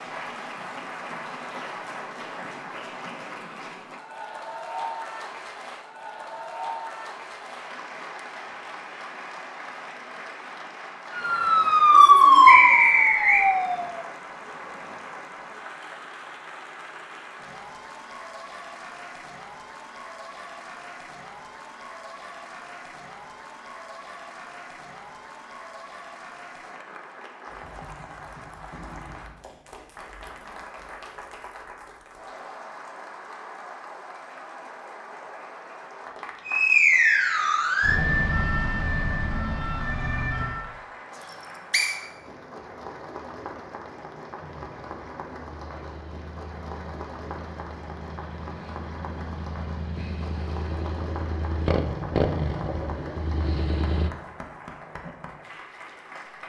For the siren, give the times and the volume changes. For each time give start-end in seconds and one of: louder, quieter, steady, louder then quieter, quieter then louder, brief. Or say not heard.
11.1-14.0 brief
36.5-40.7 quieter.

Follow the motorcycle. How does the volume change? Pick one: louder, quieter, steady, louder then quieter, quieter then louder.
louder.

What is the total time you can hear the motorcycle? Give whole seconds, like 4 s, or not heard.
10 s.